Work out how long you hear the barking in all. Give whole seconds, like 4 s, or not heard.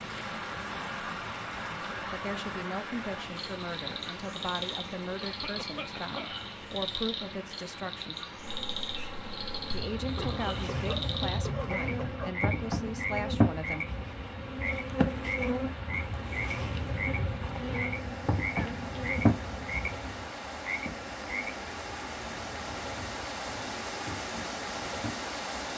not heard.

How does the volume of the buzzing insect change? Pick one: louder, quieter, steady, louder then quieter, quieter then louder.
louder then quieter.